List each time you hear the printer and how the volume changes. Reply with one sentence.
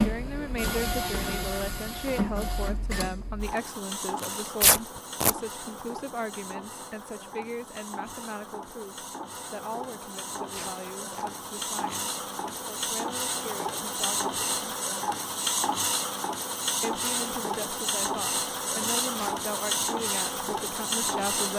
You can hear the printer from 0.0 to 21.5 s, getting quieter then louder.